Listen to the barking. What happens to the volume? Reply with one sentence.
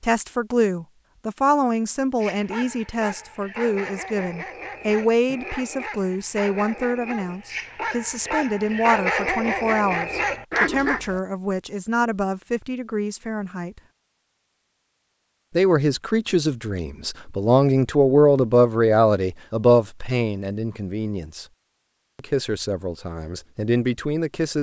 The volume of the barking goes up.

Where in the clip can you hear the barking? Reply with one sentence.
The barking can be heard from 2.2 to 11.2 s.